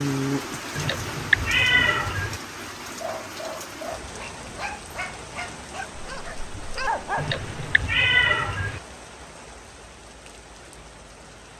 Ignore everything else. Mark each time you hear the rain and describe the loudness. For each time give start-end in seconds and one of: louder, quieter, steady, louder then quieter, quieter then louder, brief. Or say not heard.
0.0-11.5 quieter.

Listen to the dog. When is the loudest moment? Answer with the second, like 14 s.
7 s.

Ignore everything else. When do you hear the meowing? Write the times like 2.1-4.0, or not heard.
0.8-2.4, 7.2-8.8.